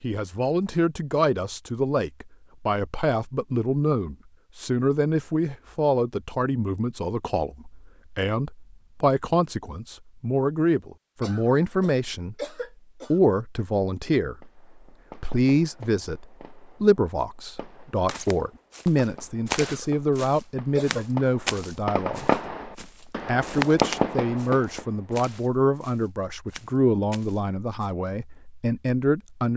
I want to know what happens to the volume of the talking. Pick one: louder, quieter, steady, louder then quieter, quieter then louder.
steady.